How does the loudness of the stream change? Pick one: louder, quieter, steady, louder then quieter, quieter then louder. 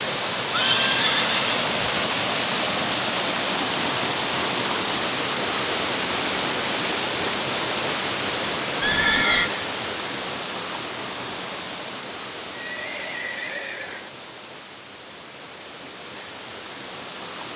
quieter.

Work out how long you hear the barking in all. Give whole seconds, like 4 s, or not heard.
not heard.